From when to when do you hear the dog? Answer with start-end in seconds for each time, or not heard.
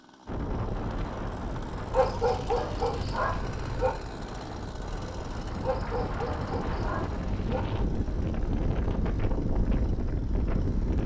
1.9-4.0, 5.6-7.7.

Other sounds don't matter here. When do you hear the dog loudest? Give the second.
2 s.